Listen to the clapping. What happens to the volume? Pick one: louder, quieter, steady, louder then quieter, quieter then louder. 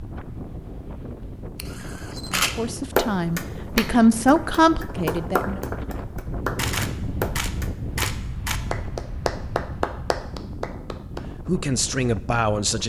steady.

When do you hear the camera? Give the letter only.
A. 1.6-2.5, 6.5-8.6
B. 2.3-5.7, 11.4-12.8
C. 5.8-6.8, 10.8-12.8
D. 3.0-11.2
A.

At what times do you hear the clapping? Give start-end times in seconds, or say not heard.
3.0-11.2.